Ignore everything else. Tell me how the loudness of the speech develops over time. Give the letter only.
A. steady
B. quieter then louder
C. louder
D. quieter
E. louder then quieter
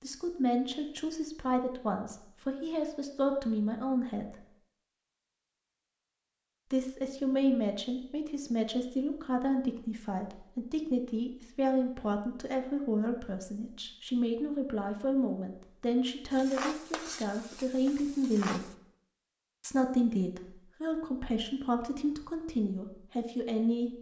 A.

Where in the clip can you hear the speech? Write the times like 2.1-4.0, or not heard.
0.0-4.4, 6.7-18.7, 19.6-23.9.